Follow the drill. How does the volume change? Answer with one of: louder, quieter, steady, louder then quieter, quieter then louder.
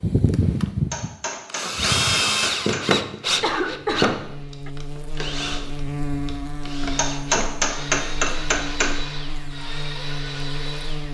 quieter.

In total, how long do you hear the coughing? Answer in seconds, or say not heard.
2 s.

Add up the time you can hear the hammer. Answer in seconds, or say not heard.
4 s.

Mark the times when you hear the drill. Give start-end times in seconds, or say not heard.
0.0-11.0.